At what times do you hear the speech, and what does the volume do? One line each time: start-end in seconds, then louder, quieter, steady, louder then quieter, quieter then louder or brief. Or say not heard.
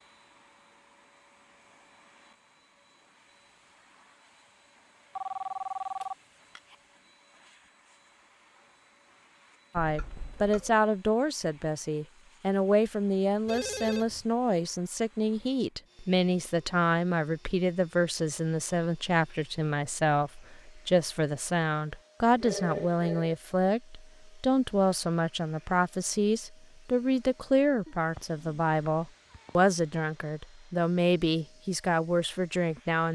9.8-33.0 steady.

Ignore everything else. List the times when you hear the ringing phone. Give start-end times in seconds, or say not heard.
5.2-6.8, 13.4-14.2, 22.4-23.4.